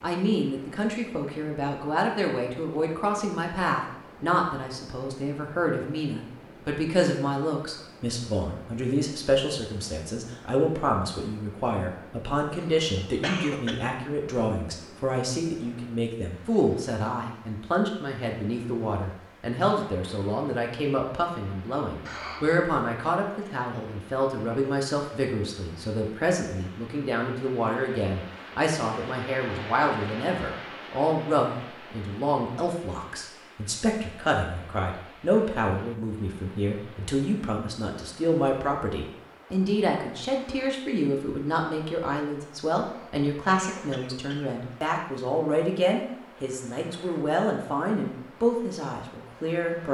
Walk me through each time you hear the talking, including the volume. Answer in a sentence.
The talking can be heard from 0.0 to 49.9 s, at a steady volume.